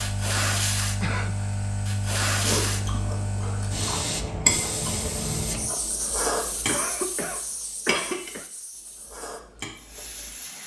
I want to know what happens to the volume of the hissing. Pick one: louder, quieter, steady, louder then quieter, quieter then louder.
quieter.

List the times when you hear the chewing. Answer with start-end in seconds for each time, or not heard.
2.4-8.3, 8.9-10.3.